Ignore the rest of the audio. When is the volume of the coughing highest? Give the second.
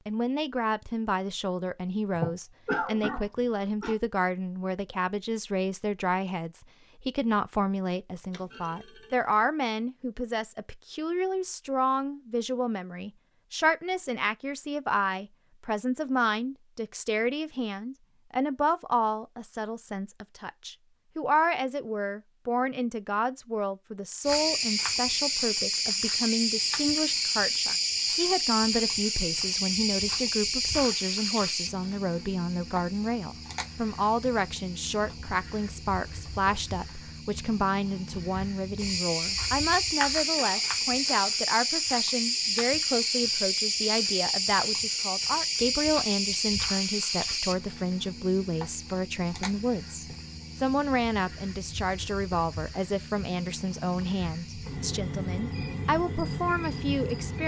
3 s.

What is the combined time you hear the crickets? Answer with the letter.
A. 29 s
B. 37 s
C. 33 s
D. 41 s
C.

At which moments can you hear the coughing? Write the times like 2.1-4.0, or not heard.
2.1-4.0, 40.4-41.3.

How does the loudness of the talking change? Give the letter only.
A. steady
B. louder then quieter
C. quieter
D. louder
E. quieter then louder
A.